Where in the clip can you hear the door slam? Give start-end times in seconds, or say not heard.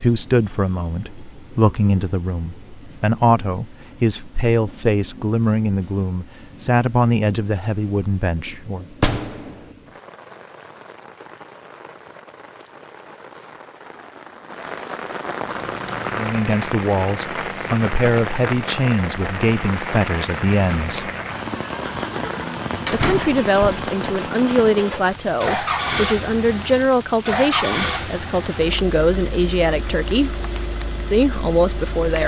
8.9-9.7, 22.9-23.8.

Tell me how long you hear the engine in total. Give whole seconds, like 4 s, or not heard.
17 s.